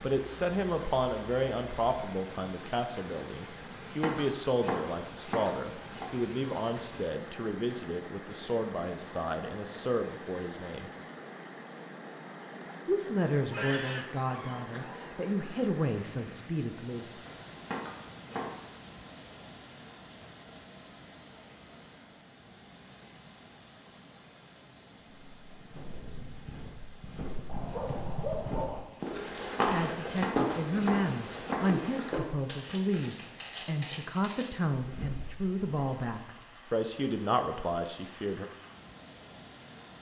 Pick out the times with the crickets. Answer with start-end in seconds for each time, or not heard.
not heard.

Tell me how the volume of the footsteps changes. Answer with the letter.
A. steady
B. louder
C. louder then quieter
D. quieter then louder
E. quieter
C.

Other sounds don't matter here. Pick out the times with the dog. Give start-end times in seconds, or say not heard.
13.5-15.1, 27.4-28.8.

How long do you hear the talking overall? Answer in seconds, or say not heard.
24 s.